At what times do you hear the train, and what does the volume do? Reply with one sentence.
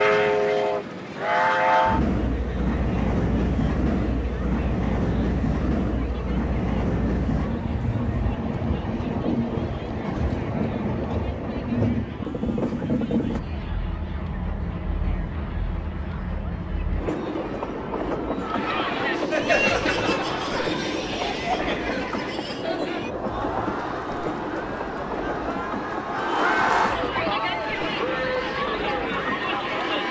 You can hear the train from 0.0 to 30.0 s, getting quieter.